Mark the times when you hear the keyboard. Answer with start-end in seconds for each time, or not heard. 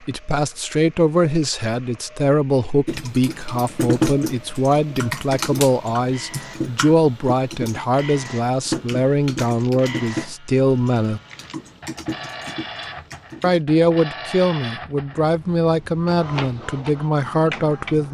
2.9-13.6.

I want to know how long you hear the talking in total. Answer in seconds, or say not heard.
16 s.